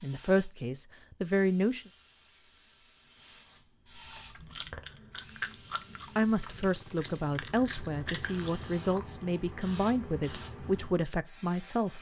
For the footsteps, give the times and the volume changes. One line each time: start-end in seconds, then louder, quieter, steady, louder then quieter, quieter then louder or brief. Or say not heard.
not heard.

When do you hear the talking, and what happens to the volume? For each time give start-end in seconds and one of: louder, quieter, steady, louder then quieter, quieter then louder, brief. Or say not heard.
0.0-1.8 brief
6.2-11.9 steady.